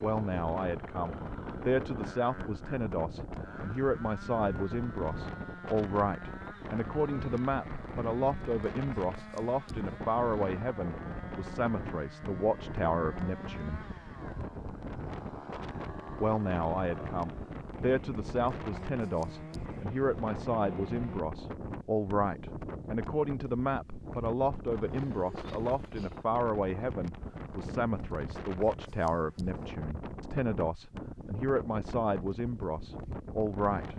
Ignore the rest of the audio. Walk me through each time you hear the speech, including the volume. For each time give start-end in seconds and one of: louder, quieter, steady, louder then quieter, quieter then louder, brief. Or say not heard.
0.0-13.8 steady
16.2-33.9 steady.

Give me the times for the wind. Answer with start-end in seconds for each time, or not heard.
0.0-33.9.